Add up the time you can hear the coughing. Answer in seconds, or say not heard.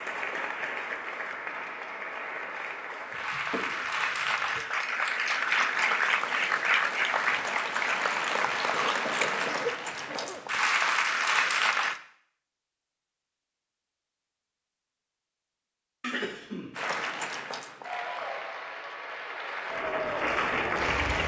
4 s.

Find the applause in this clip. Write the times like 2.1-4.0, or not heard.
0.0-12.0, 16.8-21.2.